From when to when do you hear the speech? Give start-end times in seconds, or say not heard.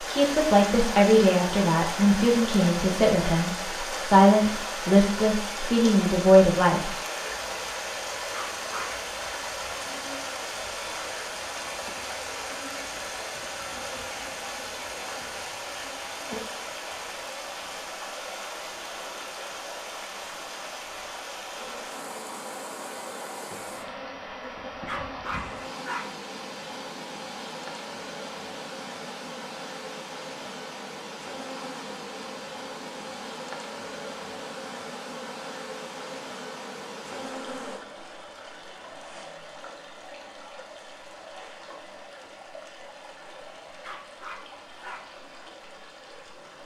0.0-7.0.